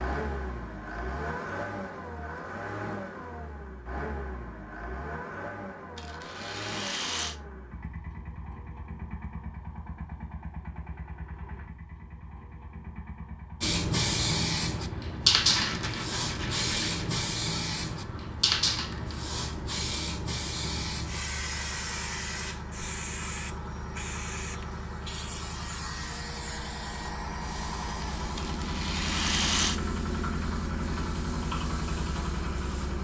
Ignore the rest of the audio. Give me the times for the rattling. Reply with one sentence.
The rattling can be heard from 6.0 to 7.3 s, from 15.4 to 17.1 s and from 28.4 to 29.8 s.